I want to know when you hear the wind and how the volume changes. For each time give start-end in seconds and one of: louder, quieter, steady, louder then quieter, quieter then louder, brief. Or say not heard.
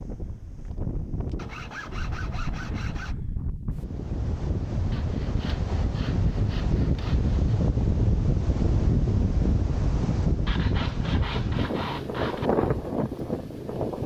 0.0-14.0 louder.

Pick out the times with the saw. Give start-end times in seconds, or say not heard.
1.4-3.1, 4.9-7.6, 10.4-12.5.